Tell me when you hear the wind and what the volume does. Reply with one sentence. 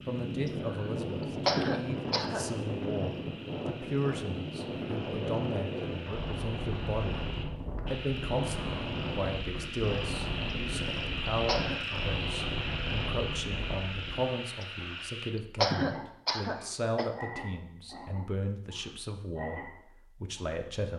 You can hear the wind from 0.0 to 14.3 s, at a steady volume.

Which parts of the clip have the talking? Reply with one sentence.
The talking can be heard from 0.1 to 7.2 s and from 7.8 to 20.9 s.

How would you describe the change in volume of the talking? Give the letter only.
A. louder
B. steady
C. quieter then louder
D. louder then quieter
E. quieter
B.